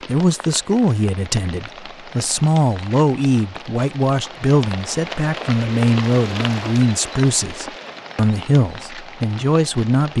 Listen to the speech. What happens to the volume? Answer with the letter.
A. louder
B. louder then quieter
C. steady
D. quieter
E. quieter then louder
C.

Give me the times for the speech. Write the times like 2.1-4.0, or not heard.
0.1-10.1.